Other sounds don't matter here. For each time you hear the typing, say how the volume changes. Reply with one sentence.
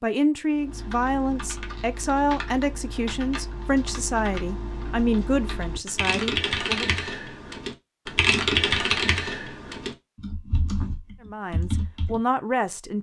You can hear the typing from 0.5 to 12.2 s, getting louder then quieter.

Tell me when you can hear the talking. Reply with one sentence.
You can hear the talking from 0.0 to 6.9 s and from 11.2 to 12.9 s.